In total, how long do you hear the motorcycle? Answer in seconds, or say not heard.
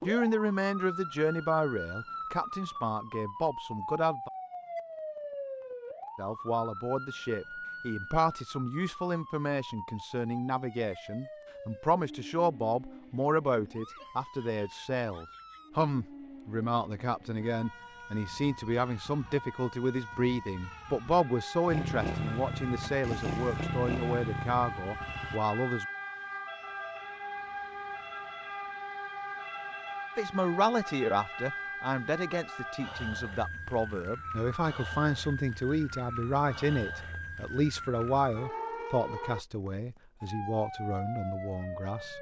4 s.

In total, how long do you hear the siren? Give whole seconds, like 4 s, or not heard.
42 s.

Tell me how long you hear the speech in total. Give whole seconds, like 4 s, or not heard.
36 s.